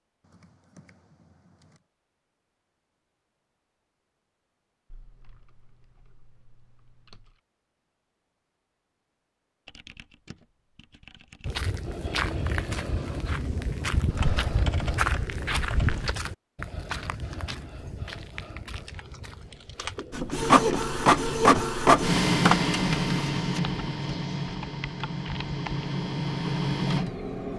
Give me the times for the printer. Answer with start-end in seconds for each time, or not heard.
20.1-27.5.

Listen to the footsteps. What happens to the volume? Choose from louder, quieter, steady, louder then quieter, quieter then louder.
quieter.